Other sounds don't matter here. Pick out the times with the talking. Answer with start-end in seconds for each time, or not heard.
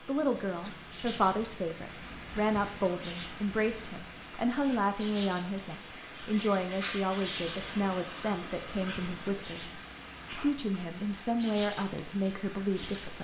0.1-13.1.